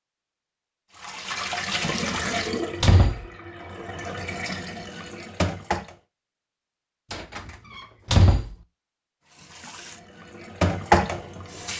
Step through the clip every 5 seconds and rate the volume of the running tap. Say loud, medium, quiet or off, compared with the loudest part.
medium, medium, loud.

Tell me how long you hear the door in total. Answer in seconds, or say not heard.
3 s.